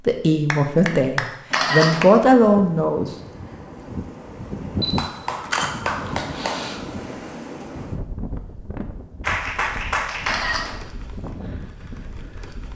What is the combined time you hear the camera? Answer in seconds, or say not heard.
3 s.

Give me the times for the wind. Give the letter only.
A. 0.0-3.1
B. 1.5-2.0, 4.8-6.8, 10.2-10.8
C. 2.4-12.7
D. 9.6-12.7
C.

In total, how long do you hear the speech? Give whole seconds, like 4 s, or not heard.
3 s.